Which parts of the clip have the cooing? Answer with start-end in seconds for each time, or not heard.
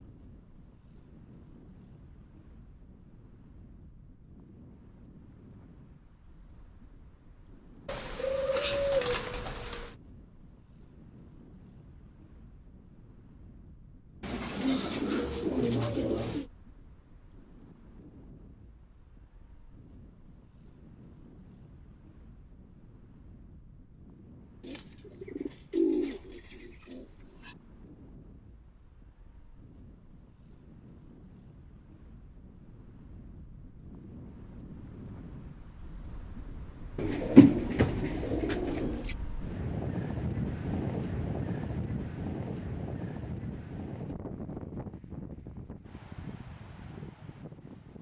7.8-9.9, 14.2-16.5, 24.6-27.6, 37.0-39.0.